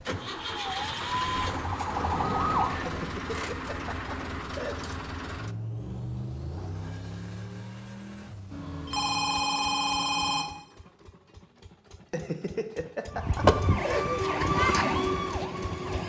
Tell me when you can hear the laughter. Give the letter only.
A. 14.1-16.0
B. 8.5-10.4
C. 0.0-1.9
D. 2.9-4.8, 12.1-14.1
D.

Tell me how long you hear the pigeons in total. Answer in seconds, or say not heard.
not heard.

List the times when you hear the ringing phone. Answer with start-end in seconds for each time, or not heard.
8.5-10.4.